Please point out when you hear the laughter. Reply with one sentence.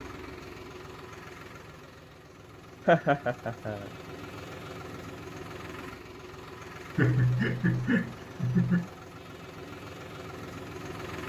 The laughter can be heard from 2.9 to 3.9 s and from 7.0 to 8.9 s.